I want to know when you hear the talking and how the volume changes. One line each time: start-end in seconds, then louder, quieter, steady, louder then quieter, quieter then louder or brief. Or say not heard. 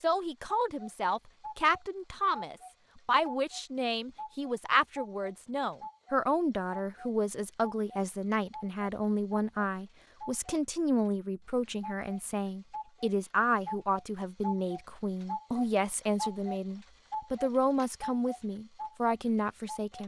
0.0-20.0 steady.